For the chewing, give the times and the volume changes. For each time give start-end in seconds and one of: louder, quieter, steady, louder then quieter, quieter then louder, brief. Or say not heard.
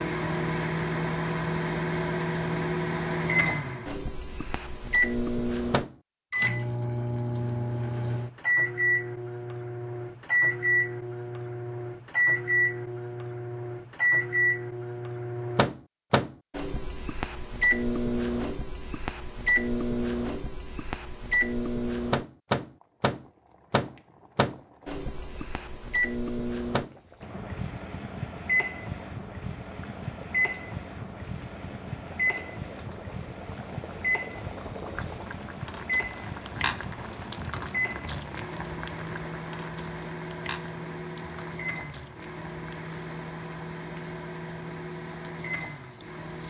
not heard.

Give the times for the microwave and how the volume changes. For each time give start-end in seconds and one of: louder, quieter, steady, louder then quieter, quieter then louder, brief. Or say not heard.
0.0-46.4 quieter.